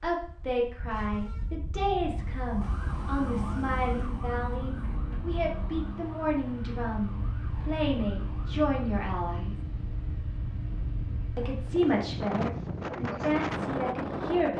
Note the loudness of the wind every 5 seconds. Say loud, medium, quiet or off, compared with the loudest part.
medium, medium, loud.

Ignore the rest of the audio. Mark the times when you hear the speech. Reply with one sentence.
You can hear the speech from 0.0 to 9.6 s and from 11.3 to 14.5 s.